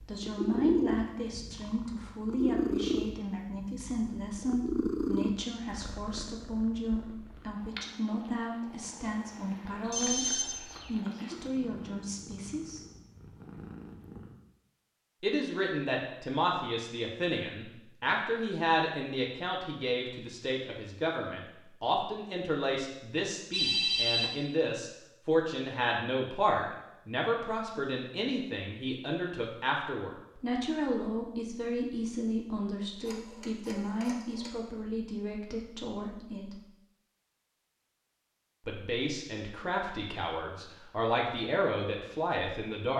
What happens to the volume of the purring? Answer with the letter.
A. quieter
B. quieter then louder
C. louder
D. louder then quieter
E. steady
A.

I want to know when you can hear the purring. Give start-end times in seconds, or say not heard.
0.0-14.3.